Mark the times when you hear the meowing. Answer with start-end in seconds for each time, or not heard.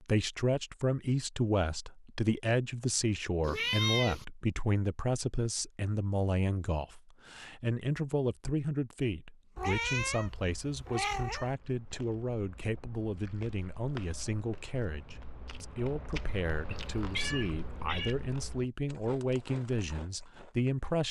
3.5-4.2, 9.6-11.5, 16.7-18.1.